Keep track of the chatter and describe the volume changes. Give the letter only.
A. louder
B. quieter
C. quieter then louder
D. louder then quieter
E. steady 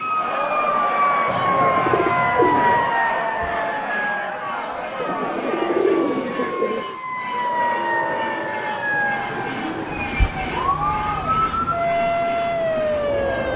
B.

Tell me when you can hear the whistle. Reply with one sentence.
You can't hear the whistle here.